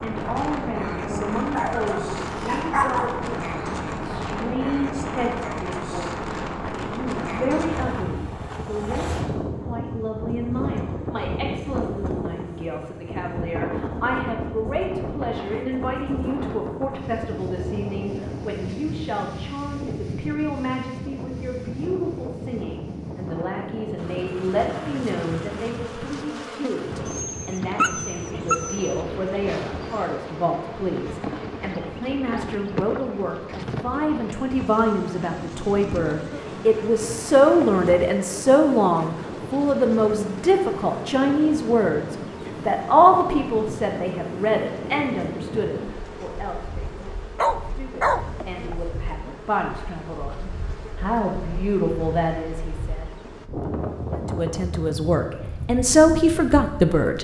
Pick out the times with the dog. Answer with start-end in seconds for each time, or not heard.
1.5-3.3, 27.1-28.9, 47.4-48.8.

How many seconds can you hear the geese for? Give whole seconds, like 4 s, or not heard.
not heard.